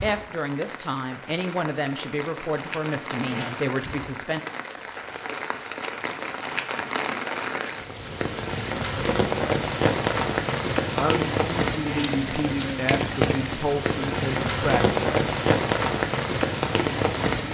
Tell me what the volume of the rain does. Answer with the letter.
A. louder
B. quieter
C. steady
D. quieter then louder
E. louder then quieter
A.